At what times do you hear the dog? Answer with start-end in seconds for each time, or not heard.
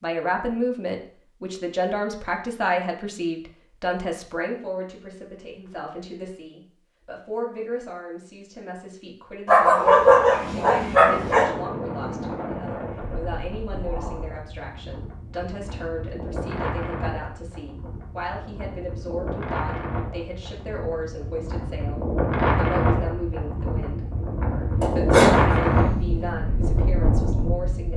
9.4-11.4, 24.8-26.2.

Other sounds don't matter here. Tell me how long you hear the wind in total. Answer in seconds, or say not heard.
18 s.